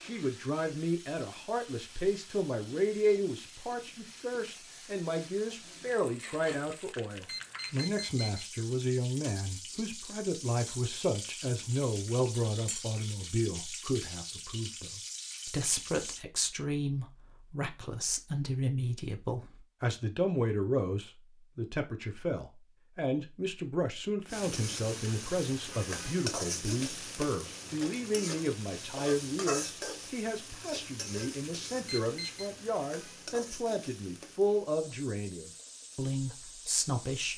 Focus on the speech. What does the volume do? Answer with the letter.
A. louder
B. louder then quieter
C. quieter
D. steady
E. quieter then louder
D.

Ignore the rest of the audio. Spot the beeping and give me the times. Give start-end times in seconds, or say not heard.
7.1-8.4, 31.8-32.5.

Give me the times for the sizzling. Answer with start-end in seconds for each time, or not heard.
0.0-16.2, 24.2-37.3.